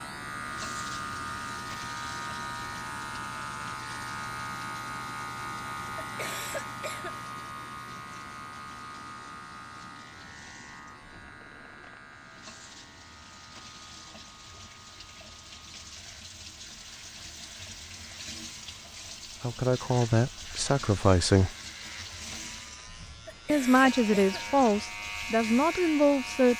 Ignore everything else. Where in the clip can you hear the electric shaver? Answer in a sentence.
You can hear the electric shaver from 0.0 to 26.5 s.